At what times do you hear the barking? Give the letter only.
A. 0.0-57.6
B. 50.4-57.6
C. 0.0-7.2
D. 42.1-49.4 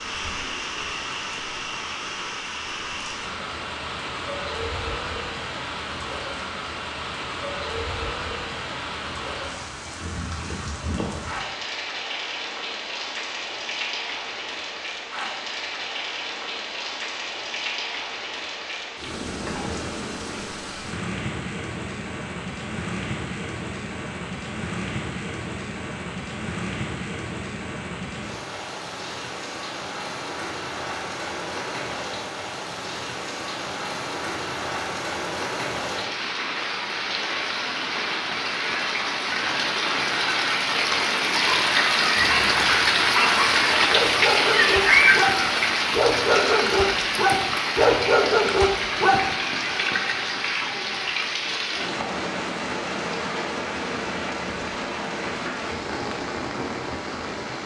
D.